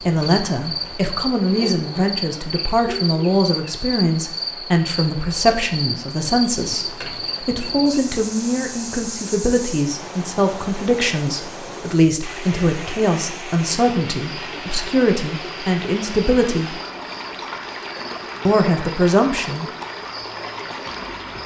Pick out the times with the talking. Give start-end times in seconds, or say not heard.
0.1-16.8, 18.4-19.6.